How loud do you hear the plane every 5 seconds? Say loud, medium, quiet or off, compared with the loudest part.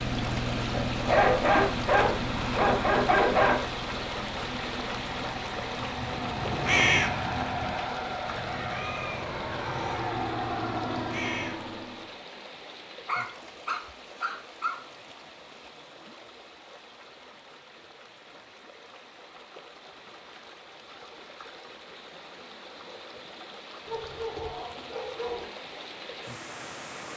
loud, loud, loud, off, off, off.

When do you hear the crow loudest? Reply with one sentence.
The volume of the crow peaks at 7 seconds.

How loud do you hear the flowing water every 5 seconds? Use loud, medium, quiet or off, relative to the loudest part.
loud, loud, medium, quiet, medium, medium.